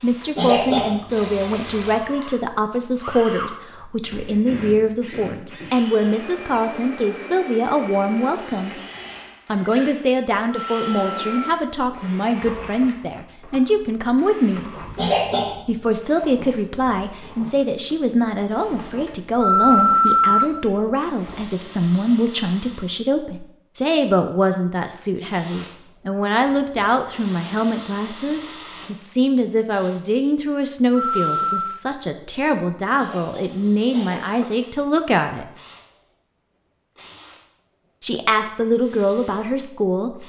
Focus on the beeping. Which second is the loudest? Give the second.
20 s.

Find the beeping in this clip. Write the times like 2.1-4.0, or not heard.
10.4-11.6, 19.4-20.4, 30.9-31.8.